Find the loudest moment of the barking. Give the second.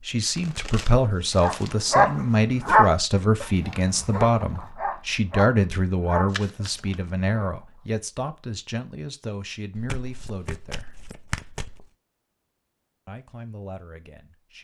3 s.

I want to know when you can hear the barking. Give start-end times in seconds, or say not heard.
1.4-7.5.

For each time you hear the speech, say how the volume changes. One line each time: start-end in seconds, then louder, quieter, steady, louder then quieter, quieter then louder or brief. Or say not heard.
0.0-11.0 quieter
13.1-14.5 brief.